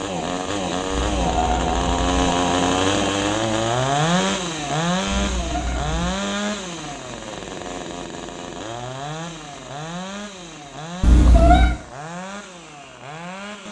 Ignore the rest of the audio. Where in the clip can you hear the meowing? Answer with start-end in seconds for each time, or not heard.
0.9-2.1, 5.0-6.2, 11.0-11.8.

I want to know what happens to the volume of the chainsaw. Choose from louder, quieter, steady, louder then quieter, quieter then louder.
quieter.